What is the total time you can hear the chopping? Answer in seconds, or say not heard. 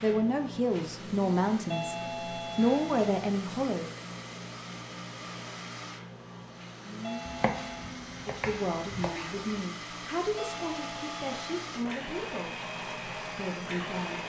2 s.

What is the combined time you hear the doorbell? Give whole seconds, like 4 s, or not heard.
4 s.